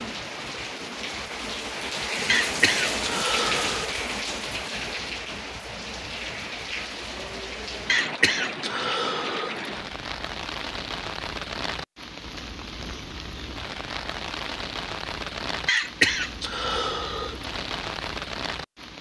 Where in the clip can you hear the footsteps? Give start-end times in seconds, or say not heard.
not heard.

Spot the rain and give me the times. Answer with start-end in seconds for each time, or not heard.
0.0-18.9.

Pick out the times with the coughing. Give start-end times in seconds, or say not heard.
2.2-3.9, 7.8-9.6, 15.7-17.4.